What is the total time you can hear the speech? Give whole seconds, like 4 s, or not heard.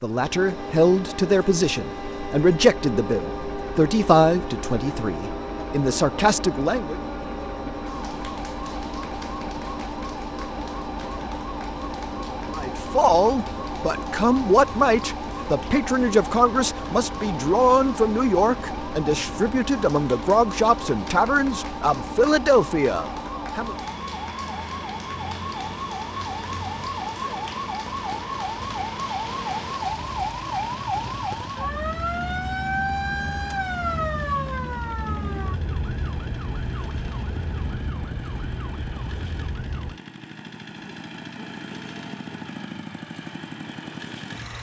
18 s.